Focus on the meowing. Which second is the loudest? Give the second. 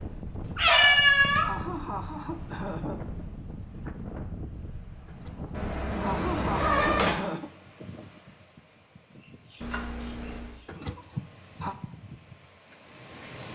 1 s.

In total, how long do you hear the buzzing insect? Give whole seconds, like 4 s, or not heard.
not heard.